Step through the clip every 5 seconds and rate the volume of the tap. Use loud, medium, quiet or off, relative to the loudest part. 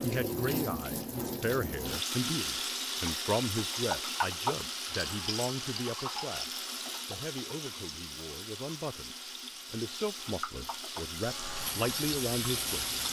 loud, medium, loud.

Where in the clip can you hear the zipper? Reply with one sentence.
The zipper can't be heard in this clip.